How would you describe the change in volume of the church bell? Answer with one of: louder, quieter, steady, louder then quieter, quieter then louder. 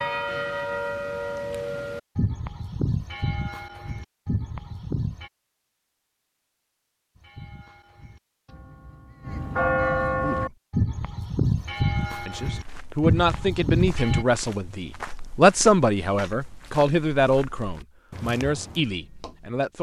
quieter then louder.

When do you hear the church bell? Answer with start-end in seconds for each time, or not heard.
0.0-5.3, 7.2-14.2.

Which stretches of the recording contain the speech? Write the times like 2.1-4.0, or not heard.
10.1-10.6, 12.2-19.7.